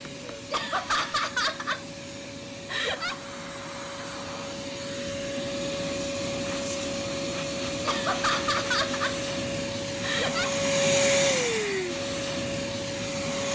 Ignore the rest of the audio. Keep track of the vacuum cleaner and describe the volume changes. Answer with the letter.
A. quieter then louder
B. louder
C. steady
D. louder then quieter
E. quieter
B.